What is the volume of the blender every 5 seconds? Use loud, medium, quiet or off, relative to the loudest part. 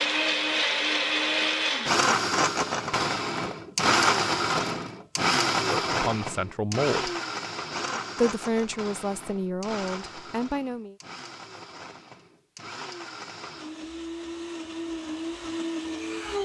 loud, medium, quiet, medium.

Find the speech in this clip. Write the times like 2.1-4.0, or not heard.
5.6-7.1, 8.2-10.9.